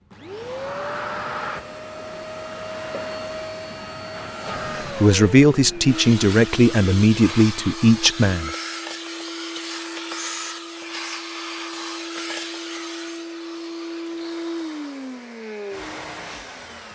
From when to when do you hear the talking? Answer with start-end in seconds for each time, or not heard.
5.0-8.5.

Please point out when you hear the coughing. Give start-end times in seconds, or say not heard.
not heard.